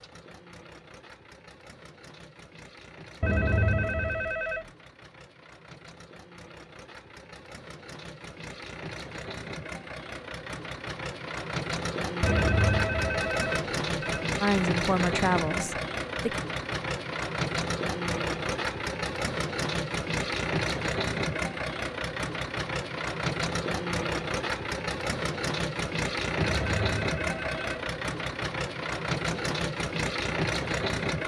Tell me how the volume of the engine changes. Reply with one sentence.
The loudness of the engine goes up.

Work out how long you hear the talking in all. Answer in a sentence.
The talking can be heard for 2 seconds in total.